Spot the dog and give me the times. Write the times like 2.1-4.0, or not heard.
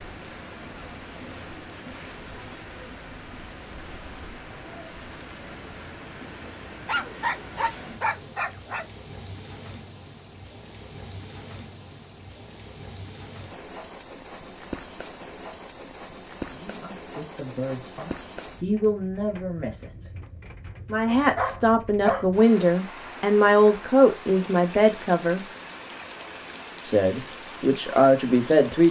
6.8-8.8, 21.1-22.2.